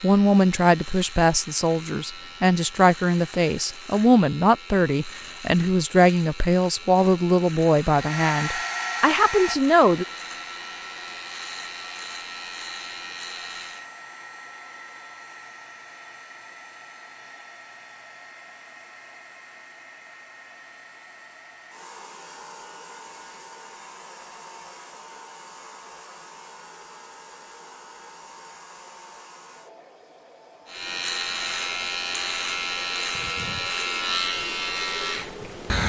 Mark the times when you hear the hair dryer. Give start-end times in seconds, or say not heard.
8.0-35.5.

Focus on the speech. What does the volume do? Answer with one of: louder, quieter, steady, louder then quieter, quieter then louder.
steady.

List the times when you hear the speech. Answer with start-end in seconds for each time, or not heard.
0.0-10.1.